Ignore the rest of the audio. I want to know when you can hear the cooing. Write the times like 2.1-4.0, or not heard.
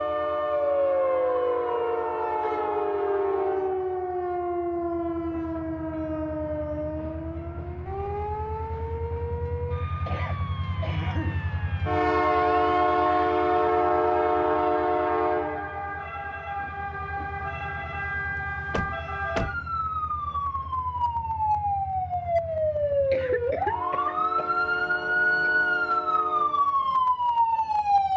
not heard.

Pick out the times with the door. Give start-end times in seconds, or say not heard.
18.7-19.6.